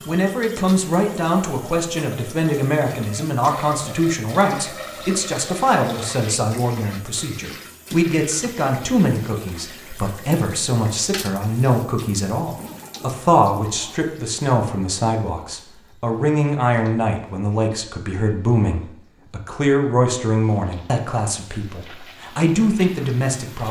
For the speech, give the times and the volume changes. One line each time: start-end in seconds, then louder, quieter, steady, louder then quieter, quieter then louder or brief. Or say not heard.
0.1-23.6 steady.